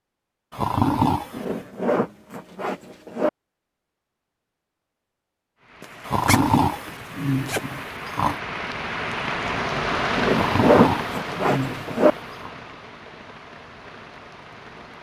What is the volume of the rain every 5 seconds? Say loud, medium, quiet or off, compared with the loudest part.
off, loud, loud.